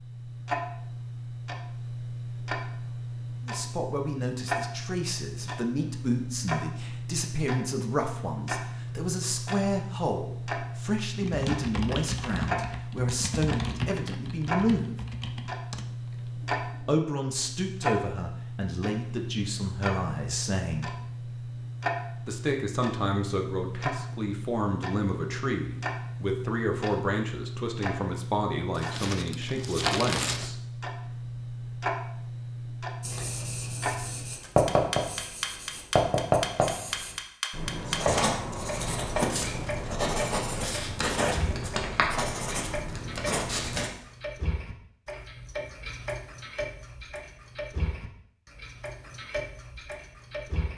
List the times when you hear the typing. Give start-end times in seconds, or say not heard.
11.2-16.3.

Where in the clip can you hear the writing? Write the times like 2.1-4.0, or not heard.
33.0-43.9.